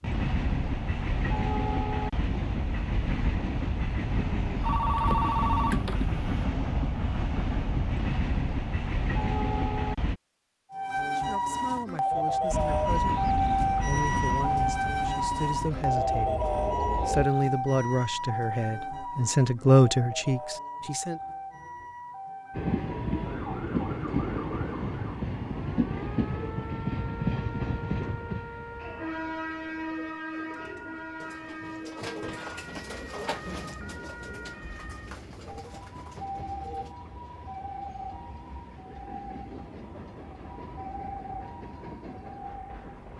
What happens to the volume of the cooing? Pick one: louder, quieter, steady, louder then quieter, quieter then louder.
louder then quieter.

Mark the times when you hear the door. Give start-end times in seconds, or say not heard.
not heard.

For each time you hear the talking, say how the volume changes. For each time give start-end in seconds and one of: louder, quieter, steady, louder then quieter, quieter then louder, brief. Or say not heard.
11.0-21.2 louder.